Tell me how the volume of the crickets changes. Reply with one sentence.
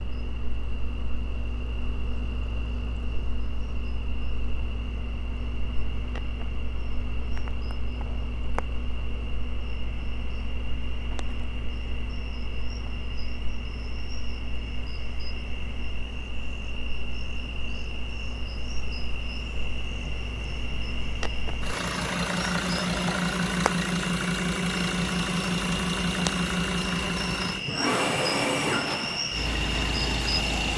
The volume of the crickets goes up.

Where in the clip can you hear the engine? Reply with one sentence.
You can hear the engine from 0.0 to 30.7 s.